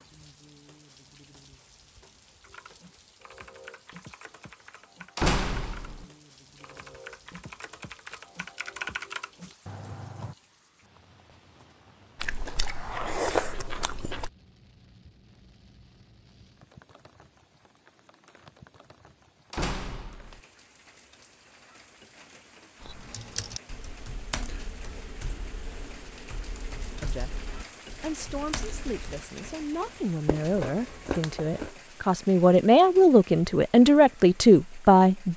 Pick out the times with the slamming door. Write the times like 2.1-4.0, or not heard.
5.2-6.0, 19.5-20.4.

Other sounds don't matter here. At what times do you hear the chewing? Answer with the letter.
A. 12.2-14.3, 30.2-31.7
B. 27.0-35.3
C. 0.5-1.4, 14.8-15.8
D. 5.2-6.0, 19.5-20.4
A.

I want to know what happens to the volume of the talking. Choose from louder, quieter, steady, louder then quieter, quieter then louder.
louder.